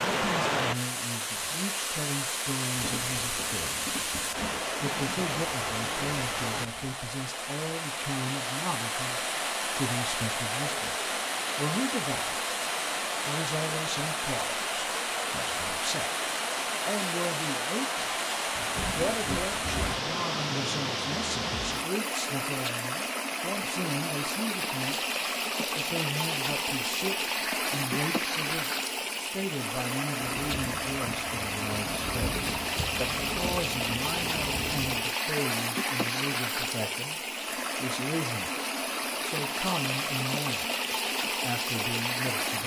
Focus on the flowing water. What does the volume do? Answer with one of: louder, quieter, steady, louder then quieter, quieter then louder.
steady.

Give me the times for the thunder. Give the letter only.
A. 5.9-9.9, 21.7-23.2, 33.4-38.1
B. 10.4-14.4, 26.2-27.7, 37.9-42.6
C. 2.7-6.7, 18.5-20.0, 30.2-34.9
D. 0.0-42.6
C.